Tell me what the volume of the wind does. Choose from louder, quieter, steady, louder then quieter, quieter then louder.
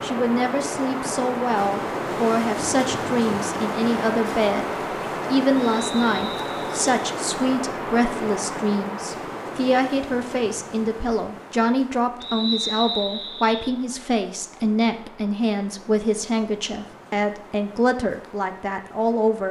quieter.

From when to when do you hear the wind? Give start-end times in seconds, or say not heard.
0.0-19.4.